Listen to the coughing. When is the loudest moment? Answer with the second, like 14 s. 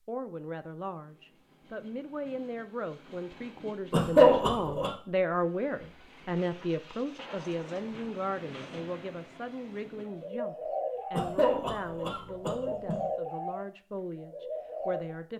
4 s.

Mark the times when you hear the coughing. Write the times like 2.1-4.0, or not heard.
3.9-4.9, 11.1-13.1.